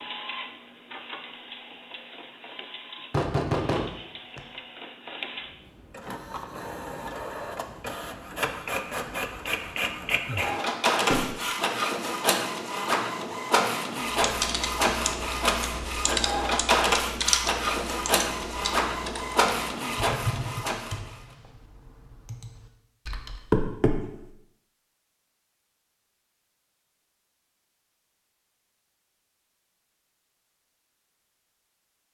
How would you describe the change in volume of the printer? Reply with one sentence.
The volume of the printer goes up.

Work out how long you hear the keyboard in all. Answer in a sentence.
You can hear the keyboard for 9 seconds altogether.